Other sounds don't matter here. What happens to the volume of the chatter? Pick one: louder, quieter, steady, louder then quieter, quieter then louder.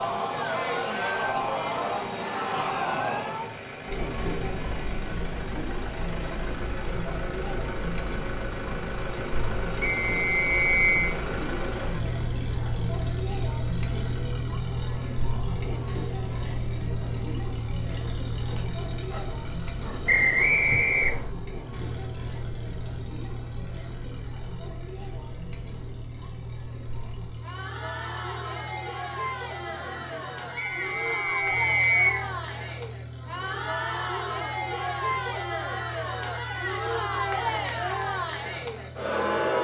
quieter then louder.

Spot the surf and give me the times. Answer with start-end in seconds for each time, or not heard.
not heard.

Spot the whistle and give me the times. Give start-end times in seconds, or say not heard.
9.8-11.1, 20.1-21.3, 30.6-32.2.